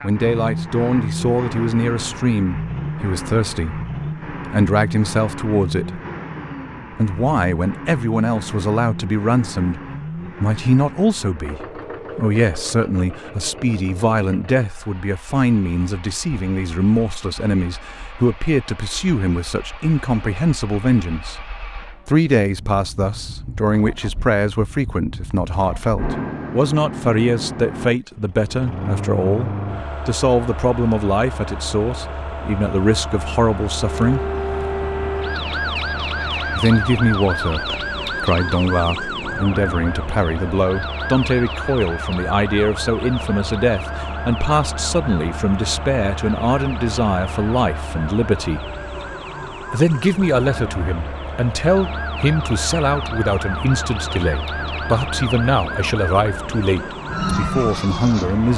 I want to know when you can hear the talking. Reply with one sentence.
You can hear the talking from 0.0 to 6.0 s, from 7.0 to 9.8 s, from 10.4 to 21.4 s, from 22.1 to 34.2 s, from 36.5 to 48.6 s and from 49.7 to 58.5 s.